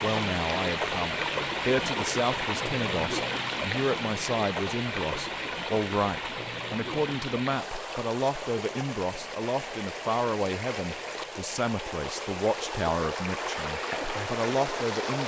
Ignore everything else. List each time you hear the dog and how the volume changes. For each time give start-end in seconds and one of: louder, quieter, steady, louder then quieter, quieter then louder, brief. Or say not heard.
not heard.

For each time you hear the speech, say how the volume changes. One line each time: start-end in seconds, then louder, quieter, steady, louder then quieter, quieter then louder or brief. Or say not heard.
0.0-15.2 steady.